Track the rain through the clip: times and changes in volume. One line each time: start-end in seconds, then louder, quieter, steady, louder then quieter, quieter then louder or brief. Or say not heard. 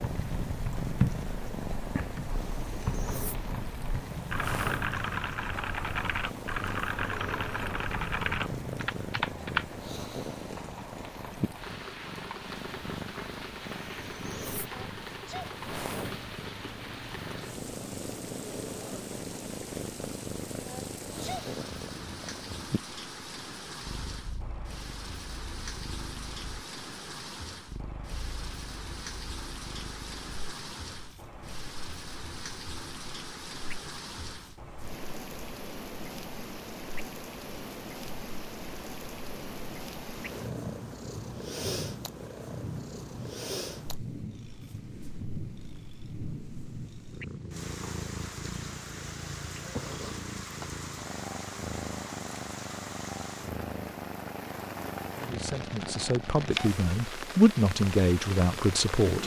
0.0-59.2 steady.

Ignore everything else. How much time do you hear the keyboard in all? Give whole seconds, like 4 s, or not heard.
10 s.